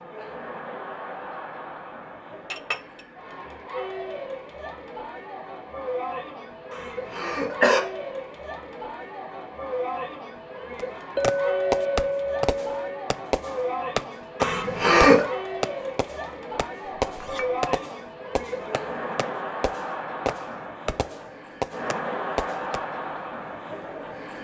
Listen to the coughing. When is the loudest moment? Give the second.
15 s.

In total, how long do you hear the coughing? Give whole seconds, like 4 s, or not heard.
2 s.